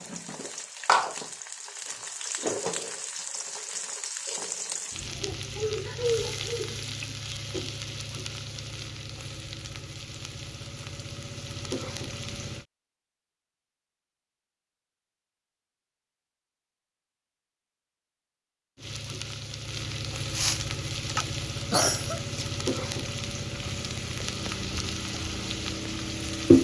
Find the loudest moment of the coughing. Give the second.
22 s.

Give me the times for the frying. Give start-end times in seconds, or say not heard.
0.0-12.7, 18.8-26.5.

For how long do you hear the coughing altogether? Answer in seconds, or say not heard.
2 s.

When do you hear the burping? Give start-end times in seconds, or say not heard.
not heard.